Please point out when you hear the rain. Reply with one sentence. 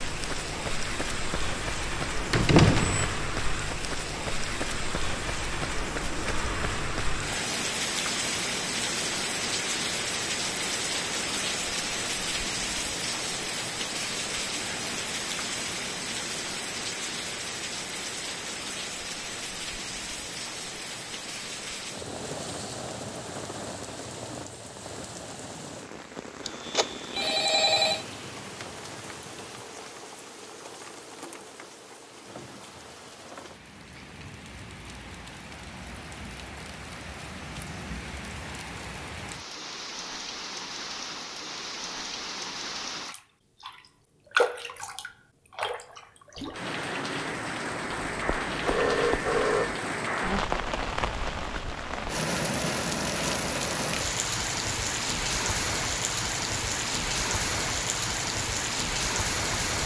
The rain can be heard from 0.0 to 59.8 s.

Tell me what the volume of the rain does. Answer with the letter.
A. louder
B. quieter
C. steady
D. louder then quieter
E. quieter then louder
E.